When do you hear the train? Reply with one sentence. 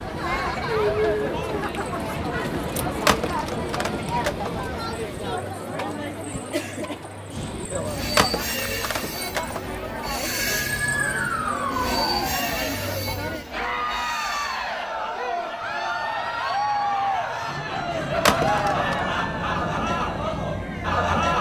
The train can be heard from 0.0 to 5.4 s and from 7.3 to 21.3 s.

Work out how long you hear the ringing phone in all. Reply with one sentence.
The ringing phone can be heard for 4 seconds in total.